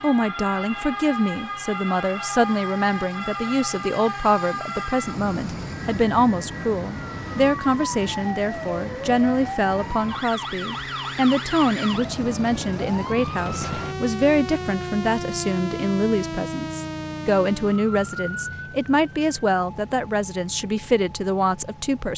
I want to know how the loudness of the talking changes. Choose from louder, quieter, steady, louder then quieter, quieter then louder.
steady.